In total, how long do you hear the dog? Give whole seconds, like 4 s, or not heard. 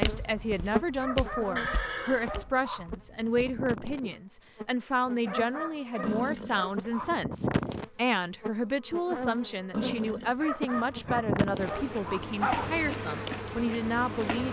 6 s.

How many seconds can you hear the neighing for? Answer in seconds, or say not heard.
3 s.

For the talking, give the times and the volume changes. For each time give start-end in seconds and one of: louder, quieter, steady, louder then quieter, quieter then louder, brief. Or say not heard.
0.0-14.4 steady.